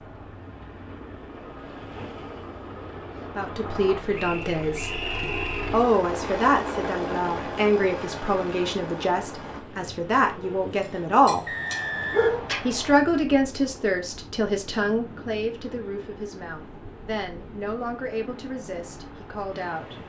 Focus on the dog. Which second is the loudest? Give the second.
12 s.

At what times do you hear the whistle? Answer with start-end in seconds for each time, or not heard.
4.2-5.8, 11.4-13.0.